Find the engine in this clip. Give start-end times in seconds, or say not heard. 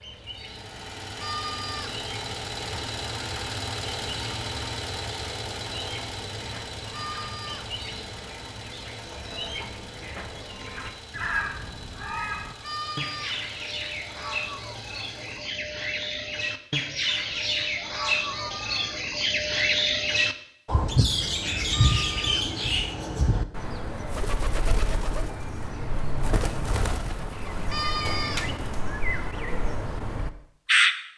0.0-15.4.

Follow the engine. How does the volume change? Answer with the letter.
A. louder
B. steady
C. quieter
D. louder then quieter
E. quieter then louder
C.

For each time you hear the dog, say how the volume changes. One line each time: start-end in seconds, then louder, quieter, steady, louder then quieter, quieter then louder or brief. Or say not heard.
not heard.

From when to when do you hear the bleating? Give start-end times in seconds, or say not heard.
1.1-2.0, 6.9-7.7, 12.6-13.4, 18.2-19.0, 21.7-22.5, 27.6-28.5.